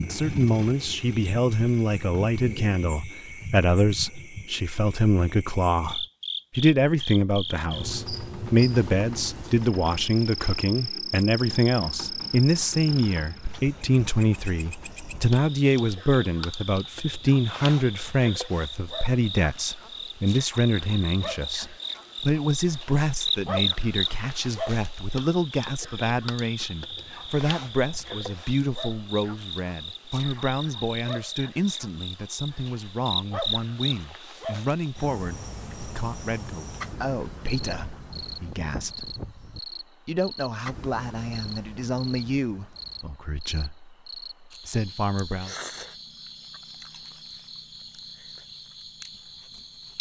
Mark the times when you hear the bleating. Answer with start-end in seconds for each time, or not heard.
37.6-39.6.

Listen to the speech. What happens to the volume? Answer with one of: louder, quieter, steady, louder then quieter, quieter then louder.
quieter.